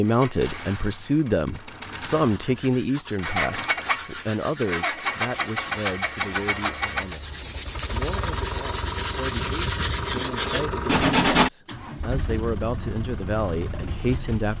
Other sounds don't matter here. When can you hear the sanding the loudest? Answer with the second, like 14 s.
11 s.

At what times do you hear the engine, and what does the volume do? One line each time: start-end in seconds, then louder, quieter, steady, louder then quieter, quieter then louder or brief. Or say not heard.
0.0-14.5 louder then quieter.